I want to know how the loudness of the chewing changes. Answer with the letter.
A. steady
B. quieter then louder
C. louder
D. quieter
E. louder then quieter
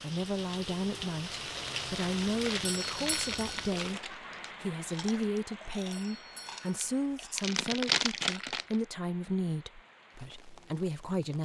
B.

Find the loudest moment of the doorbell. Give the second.
3 s.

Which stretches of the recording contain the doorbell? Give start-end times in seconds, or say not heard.
2.6-3.7, 5.9-6.9.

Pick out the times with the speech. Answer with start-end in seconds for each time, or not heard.
0.0-11.4.